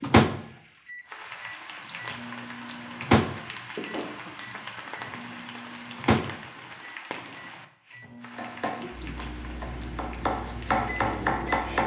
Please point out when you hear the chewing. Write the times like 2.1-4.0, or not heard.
not heard.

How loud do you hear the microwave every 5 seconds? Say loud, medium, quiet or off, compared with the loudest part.
loud, medium, quiet.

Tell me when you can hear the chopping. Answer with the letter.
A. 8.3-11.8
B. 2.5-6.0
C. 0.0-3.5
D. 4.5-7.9
A.